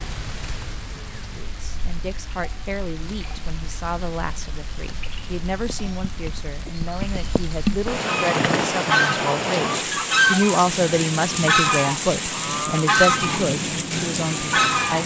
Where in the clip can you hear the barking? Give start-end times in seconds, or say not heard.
not heard.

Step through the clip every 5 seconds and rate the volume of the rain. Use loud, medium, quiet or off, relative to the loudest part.
quiet, loud, loud.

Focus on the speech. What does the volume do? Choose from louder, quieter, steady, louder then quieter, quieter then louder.
louder.